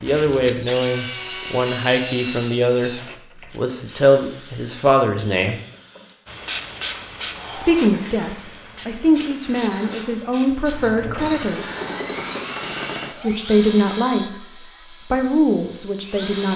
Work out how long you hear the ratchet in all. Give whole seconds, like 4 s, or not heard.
not heard.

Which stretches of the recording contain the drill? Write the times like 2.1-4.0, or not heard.
0.0-16.5.